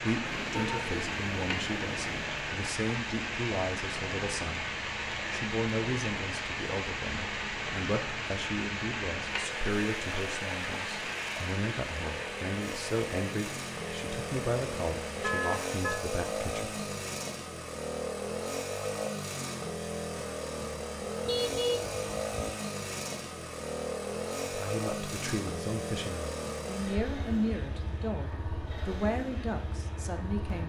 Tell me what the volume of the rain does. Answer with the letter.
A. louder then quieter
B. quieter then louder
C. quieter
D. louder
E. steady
C.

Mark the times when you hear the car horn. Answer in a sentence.
The car horn can be heard from 0.2 to 2.2 s, from 15.2 to 16.1 s and from 21.2 to 22.6 s.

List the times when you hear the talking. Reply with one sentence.
The talking can be heard from 0.0 to 4.7 s, from 5.2 to 16.8 s and from 24.4 to 30.6 s.